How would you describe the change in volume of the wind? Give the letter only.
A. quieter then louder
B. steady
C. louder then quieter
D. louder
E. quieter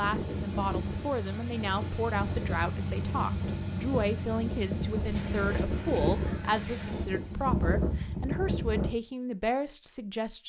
D.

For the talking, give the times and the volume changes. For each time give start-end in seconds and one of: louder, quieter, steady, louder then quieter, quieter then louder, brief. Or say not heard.
0.0-10.4 steady.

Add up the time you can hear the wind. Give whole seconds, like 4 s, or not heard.
9 s.